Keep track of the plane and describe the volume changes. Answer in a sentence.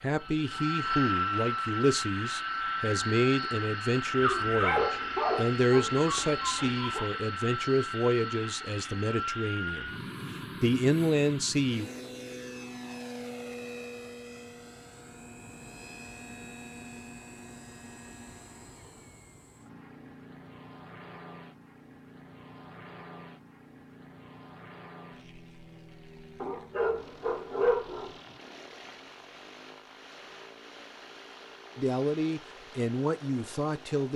The loudness of the plane goes down.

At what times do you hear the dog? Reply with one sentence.
The dog can be heard from 4.2 to 7.1 s and from 26.4 to 28.1 s.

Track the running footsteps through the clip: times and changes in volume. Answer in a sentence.
The running footsteps can't be heard in this clip.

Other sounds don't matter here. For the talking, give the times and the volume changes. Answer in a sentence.
The talking can be heard from 0.0 to 11.9 s, at a steady volume; and briefly from 31.8 to 34.1 s.